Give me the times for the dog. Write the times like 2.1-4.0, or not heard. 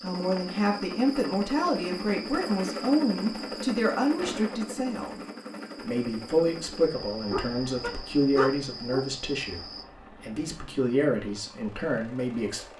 7.3-9.1.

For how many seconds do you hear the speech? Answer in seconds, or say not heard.
12 s.